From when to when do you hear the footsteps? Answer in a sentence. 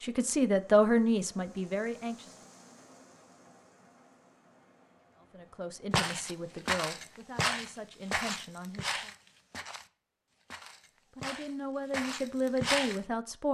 You can hear the footsteps from 5.9 to 13.0 s.